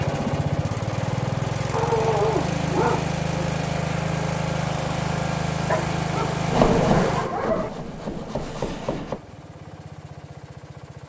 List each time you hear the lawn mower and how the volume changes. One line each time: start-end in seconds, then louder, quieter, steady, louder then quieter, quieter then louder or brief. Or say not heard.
0.0-11.0 quieter.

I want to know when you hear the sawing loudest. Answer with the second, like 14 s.
7 s.